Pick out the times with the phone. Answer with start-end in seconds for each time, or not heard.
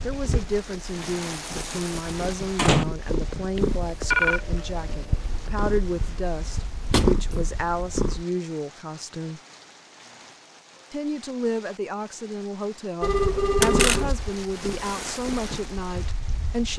3.5-4.4, 13.0-14.2.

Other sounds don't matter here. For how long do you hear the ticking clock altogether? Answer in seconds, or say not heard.
not heard.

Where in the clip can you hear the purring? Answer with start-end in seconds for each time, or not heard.
0.0-8.2, 13.1-16.7.